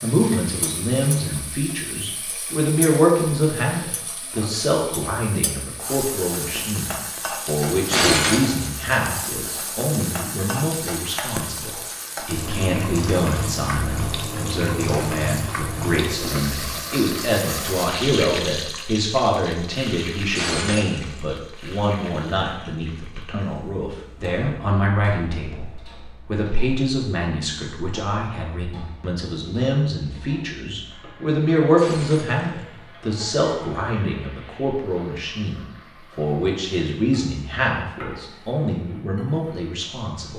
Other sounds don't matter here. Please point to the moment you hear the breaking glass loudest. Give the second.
8 s.